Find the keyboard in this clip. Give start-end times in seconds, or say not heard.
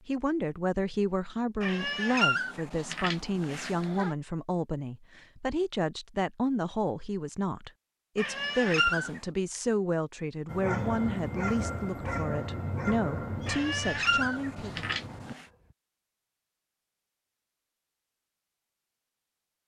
not heard.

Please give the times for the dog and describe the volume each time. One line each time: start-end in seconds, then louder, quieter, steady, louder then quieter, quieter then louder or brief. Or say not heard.
10.4-15.8 quieter.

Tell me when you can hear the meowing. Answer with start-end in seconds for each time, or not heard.
1.6-4.2, 8.2-9.2, 13.4-15.4.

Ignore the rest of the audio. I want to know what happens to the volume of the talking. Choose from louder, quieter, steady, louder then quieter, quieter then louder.
steady.